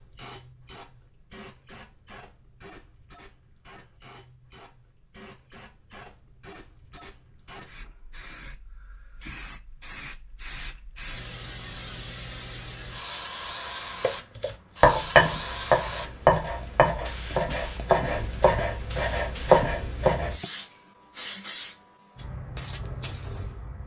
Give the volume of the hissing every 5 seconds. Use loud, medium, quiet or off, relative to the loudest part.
quiet, quiet, medium, loud, medium.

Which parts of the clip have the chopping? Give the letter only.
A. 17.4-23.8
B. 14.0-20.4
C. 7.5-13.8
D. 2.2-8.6
B.